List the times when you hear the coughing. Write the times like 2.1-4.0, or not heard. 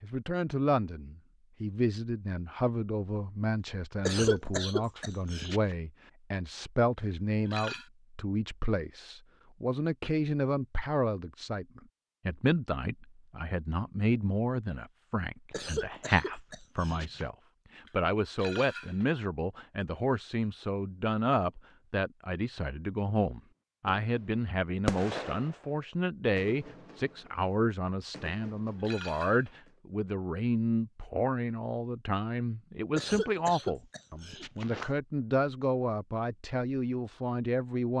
4.0-5.6, 15.5-17.2, 33.0-34.9.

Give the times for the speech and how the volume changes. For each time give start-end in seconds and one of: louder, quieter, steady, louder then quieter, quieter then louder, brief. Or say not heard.
0.0-37.9 steady.